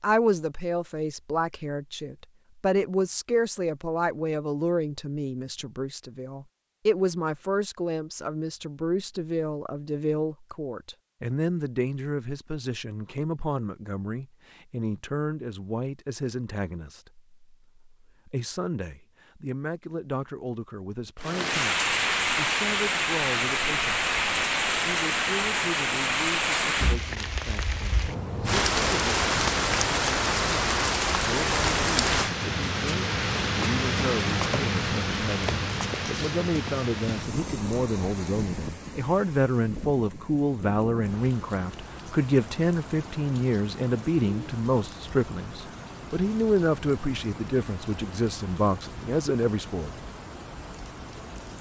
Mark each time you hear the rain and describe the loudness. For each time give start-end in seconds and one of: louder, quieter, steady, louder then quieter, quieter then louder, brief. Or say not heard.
21.2-51.5 quieter.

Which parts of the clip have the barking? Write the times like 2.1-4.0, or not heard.
not heard.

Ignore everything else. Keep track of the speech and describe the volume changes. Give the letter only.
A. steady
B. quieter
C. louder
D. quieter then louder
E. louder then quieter
D.